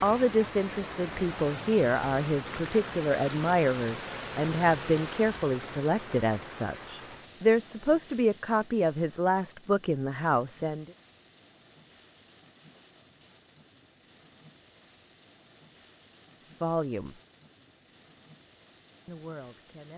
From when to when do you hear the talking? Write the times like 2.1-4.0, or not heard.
0.0-10.9, 16.6-17.2, 19.1-19.9.